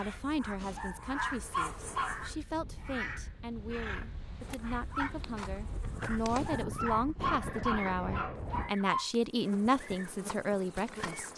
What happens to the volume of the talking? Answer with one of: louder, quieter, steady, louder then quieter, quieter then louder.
louder.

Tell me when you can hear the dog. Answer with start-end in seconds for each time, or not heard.
0.6-2.2, 6.2-9.1.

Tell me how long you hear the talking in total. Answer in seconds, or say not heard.
11 s.